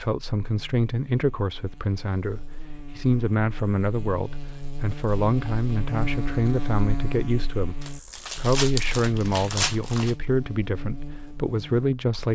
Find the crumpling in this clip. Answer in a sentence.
You can hear the crumpling from 7.8 to 10.2 s.